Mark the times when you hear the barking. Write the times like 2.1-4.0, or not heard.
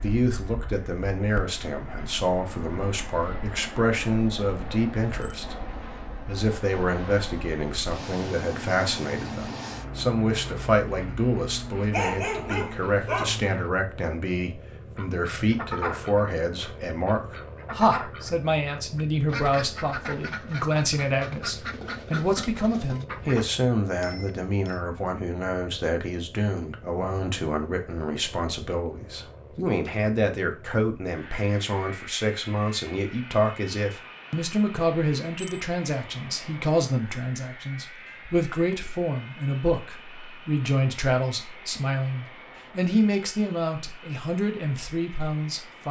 11.9-13.4.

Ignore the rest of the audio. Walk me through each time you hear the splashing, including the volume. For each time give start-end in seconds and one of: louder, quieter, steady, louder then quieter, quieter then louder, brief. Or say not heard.
not heard.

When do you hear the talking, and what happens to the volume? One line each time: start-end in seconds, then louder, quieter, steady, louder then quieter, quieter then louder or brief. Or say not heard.
0.0-45.8 steady.